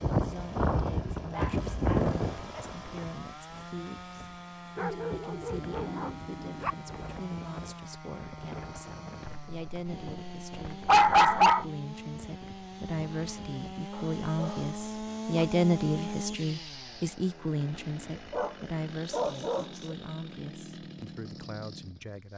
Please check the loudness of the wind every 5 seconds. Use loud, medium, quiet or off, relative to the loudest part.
loud, quiet, quiet, off, off.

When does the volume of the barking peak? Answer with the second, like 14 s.
11 s.